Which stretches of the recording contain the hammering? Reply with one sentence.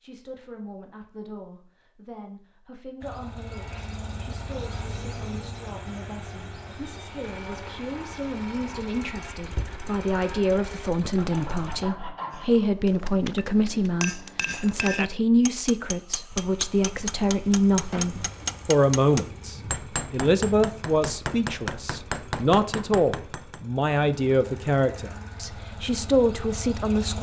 The hammering can be heard from 12.3 to 23.6 s.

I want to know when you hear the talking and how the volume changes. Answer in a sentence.
The talking can be heard from 0.0 to 27.1 s, getting louder.